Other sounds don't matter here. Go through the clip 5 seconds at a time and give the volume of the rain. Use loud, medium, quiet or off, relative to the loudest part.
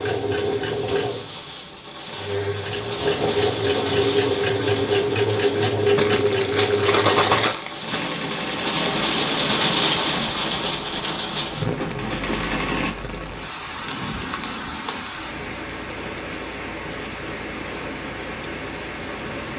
medium, loud, loud, medium.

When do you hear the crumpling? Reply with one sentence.
The crumpling can be heard from 6.0 to 8.1 s and from 13.8 to 15.2 s.